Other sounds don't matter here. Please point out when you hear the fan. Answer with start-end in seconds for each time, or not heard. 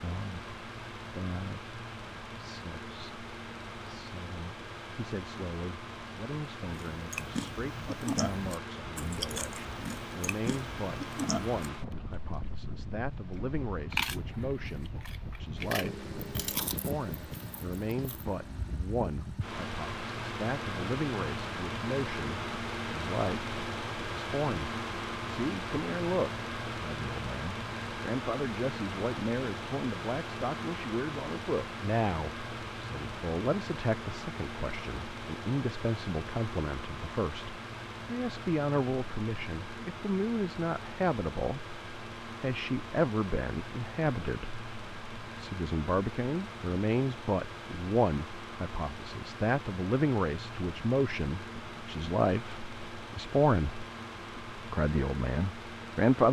0.0-56.2.